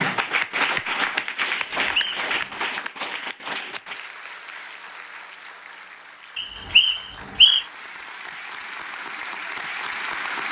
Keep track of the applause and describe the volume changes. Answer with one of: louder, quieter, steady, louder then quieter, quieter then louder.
quieter then louder.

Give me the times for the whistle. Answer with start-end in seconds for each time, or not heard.
1.8-2.2, 6.3-7.7.